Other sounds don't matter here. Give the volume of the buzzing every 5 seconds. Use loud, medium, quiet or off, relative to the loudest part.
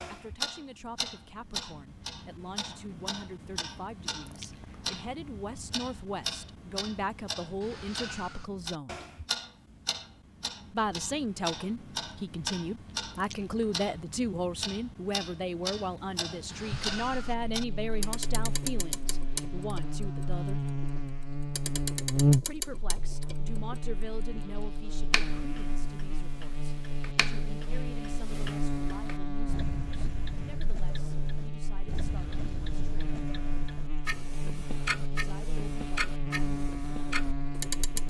off, off, off, medium, loud, medium, medium, medium.